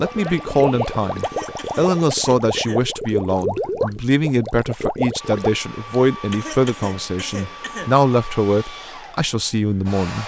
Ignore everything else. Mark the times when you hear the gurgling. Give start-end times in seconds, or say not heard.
0.0-5.6.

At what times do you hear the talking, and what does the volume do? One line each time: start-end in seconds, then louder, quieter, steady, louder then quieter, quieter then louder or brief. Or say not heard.
0.0-10.2 steady.